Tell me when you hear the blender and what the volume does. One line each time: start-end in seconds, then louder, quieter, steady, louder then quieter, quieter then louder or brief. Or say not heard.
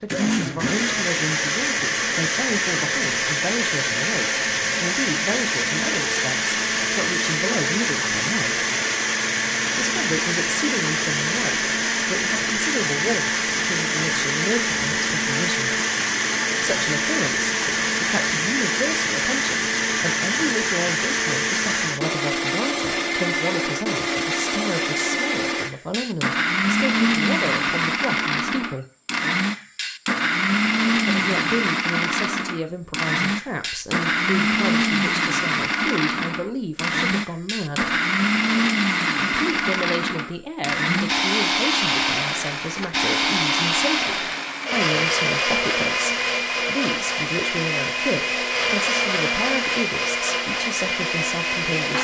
0.1-51.9 steady.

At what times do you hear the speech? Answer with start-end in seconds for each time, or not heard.
0.0-8.7, 9.8-15.8, 16.6-28.9, 30.9-38.0, 39.3-51.9.